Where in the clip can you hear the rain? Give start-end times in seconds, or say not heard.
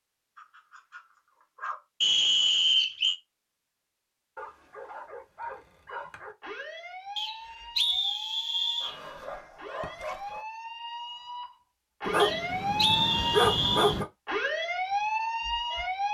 not heard.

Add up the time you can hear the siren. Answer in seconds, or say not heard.
10 s.